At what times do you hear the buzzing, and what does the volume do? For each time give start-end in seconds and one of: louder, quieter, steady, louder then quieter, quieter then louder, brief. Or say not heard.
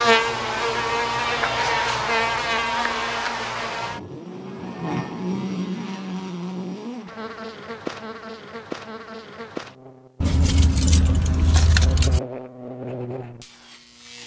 0.0-14.2 quieter.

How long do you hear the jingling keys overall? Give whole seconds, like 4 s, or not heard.
2 s.